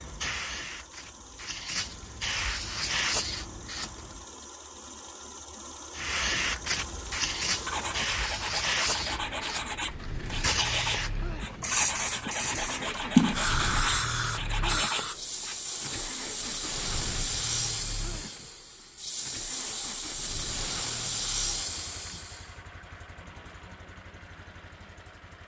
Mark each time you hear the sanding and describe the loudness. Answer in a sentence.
You can hear the sanding from 7.7 to 15.6 s, at a steady volume.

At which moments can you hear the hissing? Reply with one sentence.
You can hear the hissing from 0.0 to 4.2 s and from 5.9 to 22.6 s.